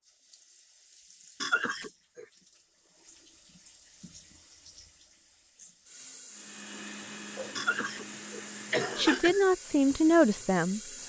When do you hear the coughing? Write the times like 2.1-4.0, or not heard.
1.4-2.2, 7.5-9.4.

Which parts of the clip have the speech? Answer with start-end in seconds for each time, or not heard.
8.9-10.8.